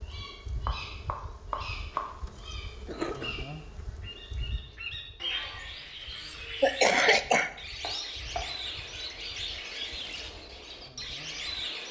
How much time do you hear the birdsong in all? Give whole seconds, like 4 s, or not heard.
12 s.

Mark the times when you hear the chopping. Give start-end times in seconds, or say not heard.
0.7-2.0, 7.3-8.4.